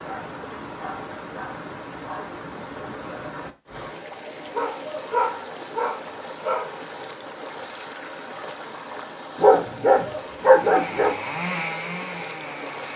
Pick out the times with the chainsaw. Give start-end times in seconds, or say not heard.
10.6-12.9.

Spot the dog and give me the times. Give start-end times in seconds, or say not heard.
0.1-2.3, 4.5-6.8, 9.3-11.2.